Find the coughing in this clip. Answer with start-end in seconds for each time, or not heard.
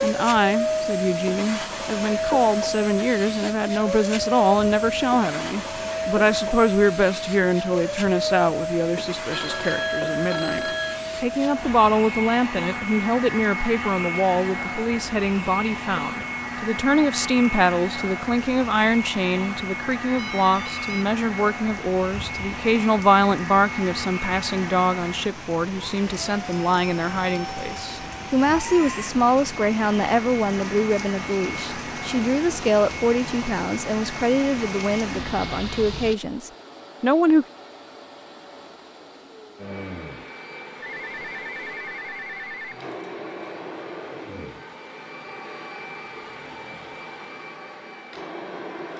not heard.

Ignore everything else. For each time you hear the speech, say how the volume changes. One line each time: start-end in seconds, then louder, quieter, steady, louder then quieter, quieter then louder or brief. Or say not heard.
0.0-37.5 steady.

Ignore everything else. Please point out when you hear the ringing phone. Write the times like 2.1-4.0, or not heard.
9.3-11.0, 20.1-21.1, 40.8-42.8.